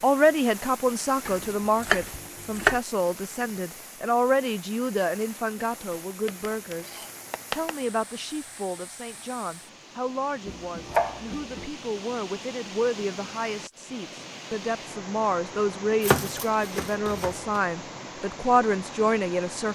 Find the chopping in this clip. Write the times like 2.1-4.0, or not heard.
1.2-2.8, 6.2-7.8, 10.4-11.7, 16.0-17.6.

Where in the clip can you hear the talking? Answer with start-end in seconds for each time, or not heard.
0.0-19.7.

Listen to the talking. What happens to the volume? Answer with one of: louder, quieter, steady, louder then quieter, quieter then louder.
quieter then louder.